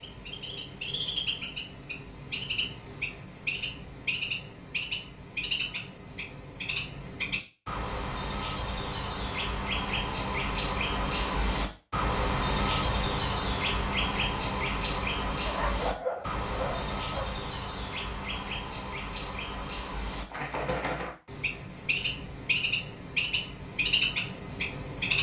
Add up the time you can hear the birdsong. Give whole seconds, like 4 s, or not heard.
25 s.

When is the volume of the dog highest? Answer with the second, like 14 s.
16 s.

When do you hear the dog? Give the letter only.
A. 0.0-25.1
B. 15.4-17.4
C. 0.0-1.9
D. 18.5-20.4
B.